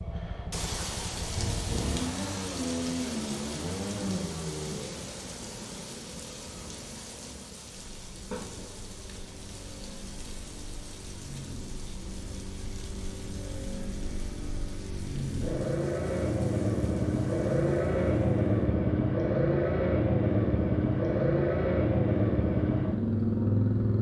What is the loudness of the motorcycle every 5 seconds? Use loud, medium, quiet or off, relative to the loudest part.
medium, quiet, quiet, loud, loud.